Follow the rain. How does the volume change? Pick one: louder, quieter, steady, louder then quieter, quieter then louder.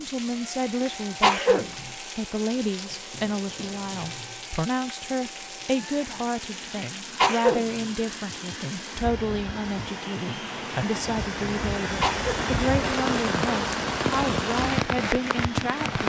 louder.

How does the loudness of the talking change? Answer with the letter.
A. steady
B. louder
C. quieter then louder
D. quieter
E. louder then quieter
A.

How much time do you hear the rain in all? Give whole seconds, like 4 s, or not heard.
16 s.